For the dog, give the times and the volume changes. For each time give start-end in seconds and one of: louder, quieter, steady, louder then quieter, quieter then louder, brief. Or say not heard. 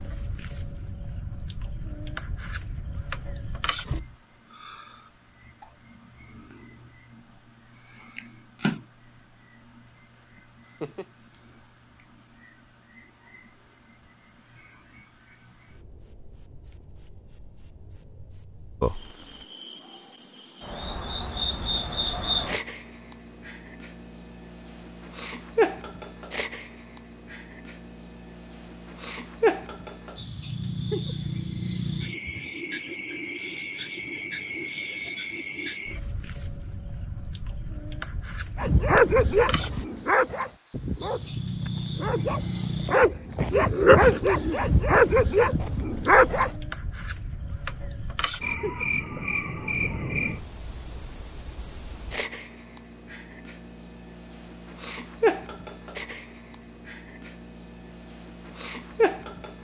38.5-46.5 quieter then louder.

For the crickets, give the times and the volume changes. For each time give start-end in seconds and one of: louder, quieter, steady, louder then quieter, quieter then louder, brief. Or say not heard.
0.0-59.5 steady.